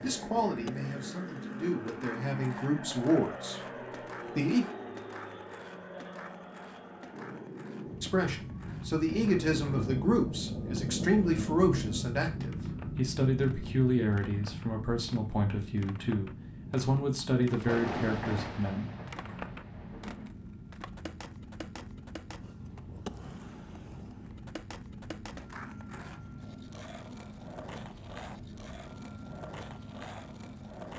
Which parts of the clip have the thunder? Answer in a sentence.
You can hear the thunder from 9.1 to 12.1 s and from 17.4 to 20.3 s.